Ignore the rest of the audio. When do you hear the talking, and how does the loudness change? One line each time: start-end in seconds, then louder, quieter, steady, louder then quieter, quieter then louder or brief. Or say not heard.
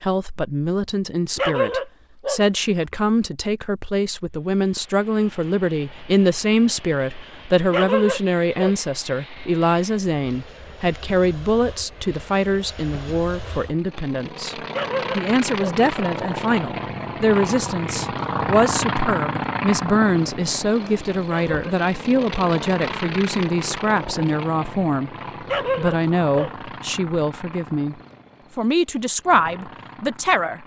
0.0-25.1 steady
25.8-27.9 brief
28.6-30.6 brief.